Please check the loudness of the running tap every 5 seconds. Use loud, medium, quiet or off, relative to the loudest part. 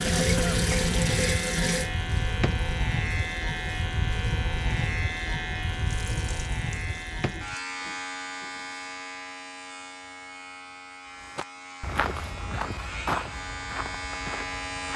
loud, quiet, off.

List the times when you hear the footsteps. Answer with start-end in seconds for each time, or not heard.
11.2-14.9.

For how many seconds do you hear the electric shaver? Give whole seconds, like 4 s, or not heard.
15 s.